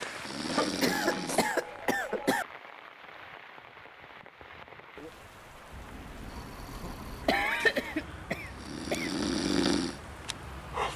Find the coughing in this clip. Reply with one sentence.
The coughing can be heard from 0.5 to 2.5 s and from 7.2 to 9.2 s.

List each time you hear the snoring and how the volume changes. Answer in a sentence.
You can hear the snoring briefly from 0.0 to 1.6 s; and from 5.7 to 10.9 s, getting quieter then louder.